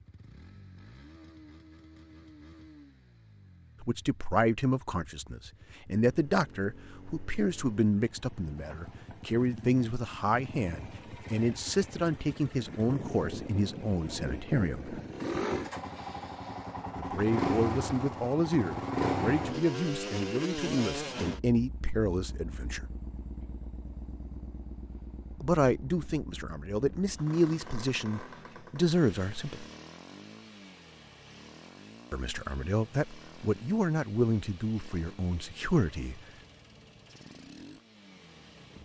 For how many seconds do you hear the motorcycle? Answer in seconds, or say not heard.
39 s.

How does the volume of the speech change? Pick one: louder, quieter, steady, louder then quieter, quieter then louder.
steady.